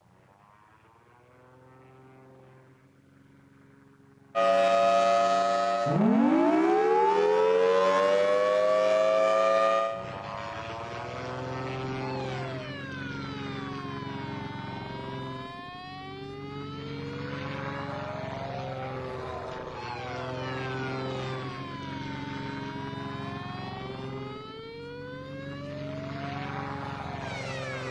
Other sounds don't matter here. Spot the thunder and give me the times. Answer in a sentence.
You can't hear the thunder here.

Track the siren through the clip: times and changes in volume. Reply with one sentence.
You can hear the siren from 4.3 to 27.8 s, getting quieter.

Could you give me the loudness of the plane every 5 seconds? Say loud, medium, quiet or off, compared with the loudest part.
quiet, quiet, loud, loud, loud, loud.